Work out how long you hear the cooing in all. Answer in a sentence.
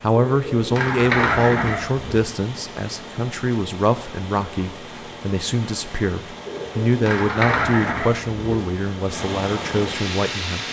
The cooing can be heard for 4 seconds in total.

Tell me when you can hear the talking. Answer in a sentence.
The talking can be heard from 0.0 to 10.6 s.